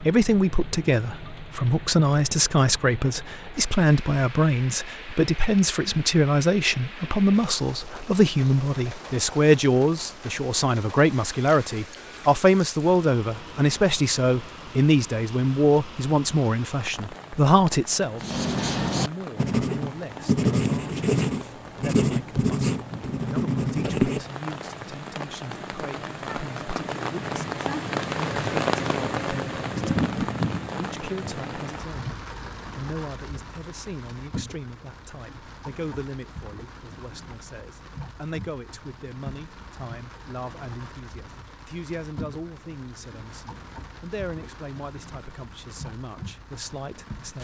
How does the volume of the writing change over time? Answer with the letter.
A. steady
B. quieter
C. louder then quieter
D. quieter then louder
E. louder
A.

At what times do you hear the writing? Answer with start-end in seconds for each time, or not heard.
18.2-24.3.